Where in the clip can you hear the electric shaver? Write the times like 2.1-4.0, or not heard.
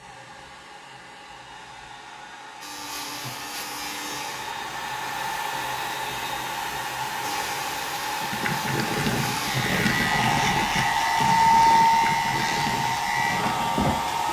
2.6-4.5, 7.2-14.2.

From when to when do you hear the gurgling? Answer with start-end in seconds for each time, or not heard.
8.2-13.9.